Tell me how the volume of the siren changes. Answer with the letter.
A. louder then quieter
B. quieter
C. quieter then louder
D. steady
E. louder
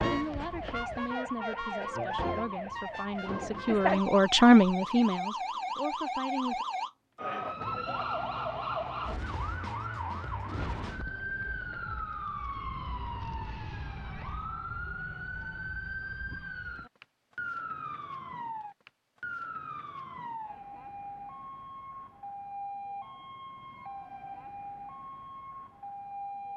B.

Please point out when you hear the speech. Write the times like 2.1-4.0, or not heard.
0.0-6.7.